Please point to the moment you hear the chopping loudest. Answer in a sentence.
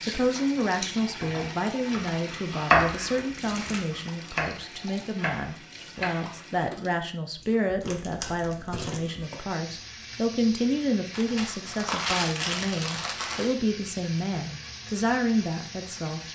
The volume of the chopping peaks at 3 seconds.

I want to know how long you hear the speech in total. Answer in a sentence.
You can hear the speech for 16 seconds altogether.